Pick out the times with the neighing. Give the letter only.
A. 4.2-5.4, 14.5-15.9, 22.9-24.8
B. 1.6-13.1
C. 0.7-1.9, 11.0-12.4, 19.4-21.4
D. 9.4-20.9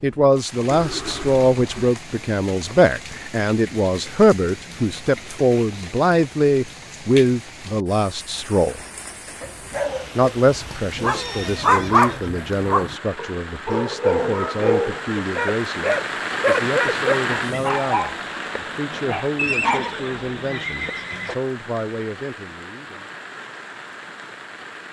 C.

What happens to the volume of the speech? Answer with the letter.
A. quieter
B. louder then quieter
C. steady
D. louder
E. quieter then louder
A.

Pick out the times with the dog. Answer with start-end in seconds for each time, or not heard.
9.4-20.9.